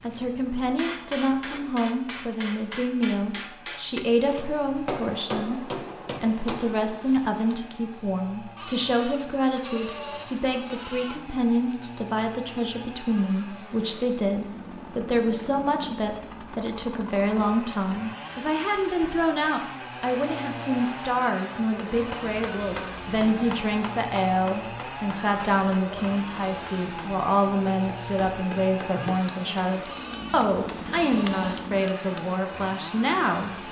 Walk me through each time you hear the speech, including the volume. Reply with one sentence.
You can hear the speech from 0.0 to 33.5 s, at a steady volume.